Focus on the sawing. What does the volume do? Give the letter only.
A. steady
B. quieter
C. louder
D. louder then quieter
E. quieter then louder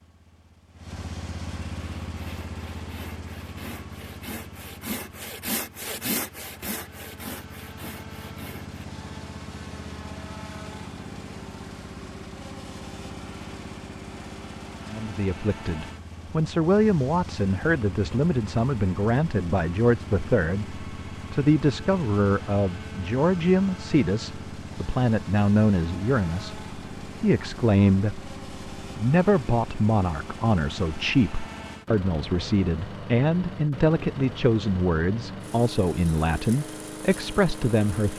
D.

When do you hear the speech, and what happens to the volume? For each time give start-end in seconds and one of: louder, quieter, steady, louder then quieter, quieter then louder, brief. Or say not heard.
14.9-38.1 steady.